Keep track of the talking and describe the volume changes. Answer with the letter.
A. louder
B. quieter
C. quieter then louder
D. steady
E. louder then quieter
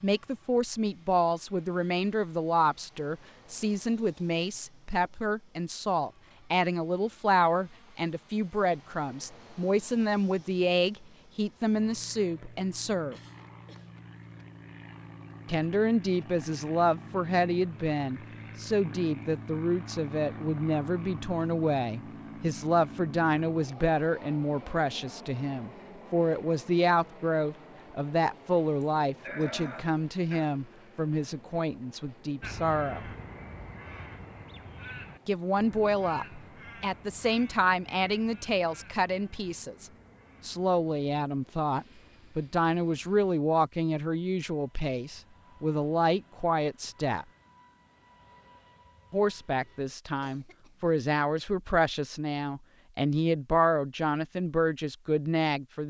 D.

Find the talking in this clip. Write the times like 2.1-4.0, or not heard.
0.0-13.2, 15.4-33.0, 35.2-47.2, 49.1-55.8.